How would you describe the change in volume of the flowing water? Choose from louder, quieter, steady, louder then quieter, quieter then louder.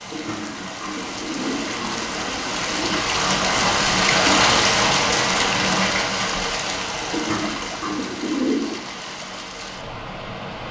louder then quieter.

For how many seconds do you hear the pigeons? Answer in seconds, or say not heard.
5 s.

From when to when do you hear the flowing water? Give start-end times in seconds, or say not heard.
0.0-10.6.